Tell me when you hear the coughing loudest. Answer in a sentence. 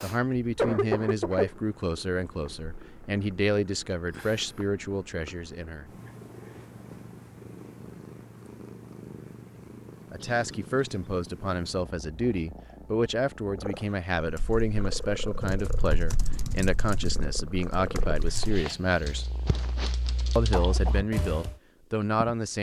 The volume of the coughing peaks at 1 second.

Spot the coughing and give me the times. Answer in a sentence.
The coughing can be heard from 0.6 to 1.5 s, from 10.2 to 11.3 s and from 20.5 to 21.1 s.